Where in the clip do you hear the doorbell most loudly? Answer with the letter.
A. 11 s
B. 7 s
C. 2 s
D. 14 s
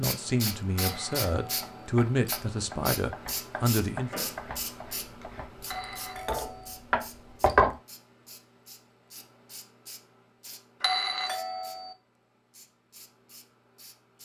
A.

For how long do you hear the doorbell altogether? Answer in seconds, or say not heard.
3 s.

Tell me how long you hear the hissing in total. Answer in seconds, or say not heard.
14 s.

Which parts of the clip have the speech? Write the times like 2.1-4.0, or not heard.
0.0-4.1.